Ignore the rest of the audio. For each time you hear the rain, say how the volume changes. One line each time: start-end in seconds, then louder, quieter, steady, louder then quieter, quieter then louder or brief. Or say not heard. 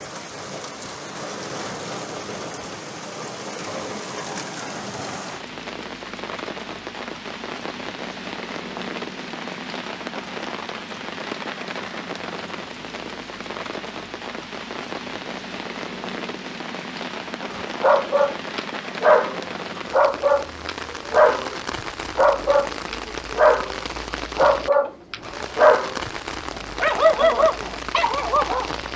0.0-28.9 steady.